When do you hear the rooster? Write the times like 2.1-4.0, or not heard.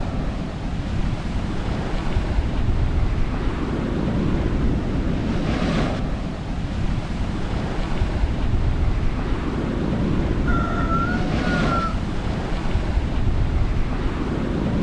10.4-12.0.